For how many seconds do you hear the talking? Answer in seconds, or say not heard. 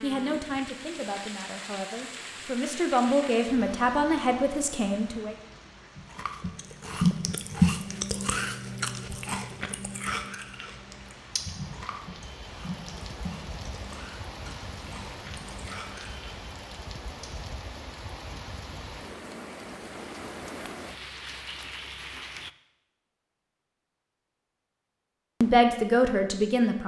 7 s.